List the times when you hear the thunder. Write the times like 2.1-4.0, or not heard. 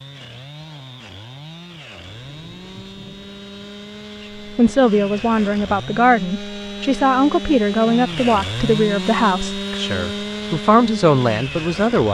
2.0-4.5.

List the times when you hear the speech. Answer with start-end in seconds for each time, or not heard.
4.5-12.0.